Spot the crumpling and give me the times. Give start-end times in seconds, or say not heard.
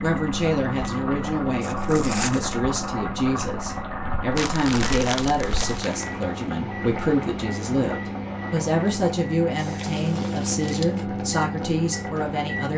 1.6-2.4, 4.3-6.2, 9.6-11.1.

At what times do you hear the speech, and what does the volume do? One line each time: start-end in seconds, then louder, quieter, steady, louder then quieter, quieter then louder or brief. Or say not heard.
0.0-12.7 steady.